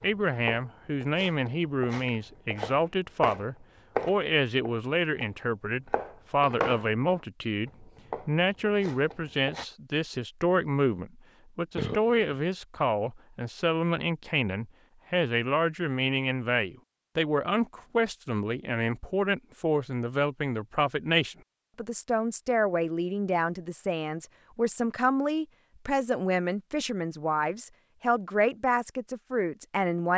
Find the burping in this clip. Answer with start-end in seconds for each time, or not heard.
11.8-12.3.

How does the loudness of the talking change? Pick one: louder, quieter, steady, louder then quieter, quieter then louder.
steady.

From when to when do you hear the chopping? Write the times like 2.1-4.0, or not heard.
0.0-9.7.